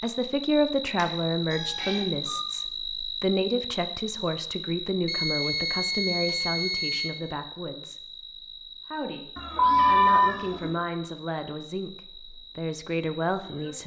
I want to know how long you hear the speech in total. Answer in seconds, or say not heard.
14 s.